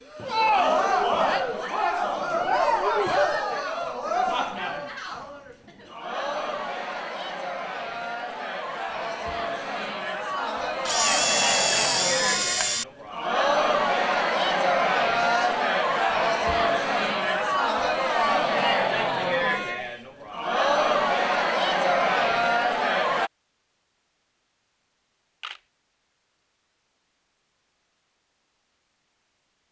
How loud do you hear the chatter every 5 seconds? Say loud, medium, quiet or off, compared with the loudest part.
loud, medium, loud, loud, loud, off.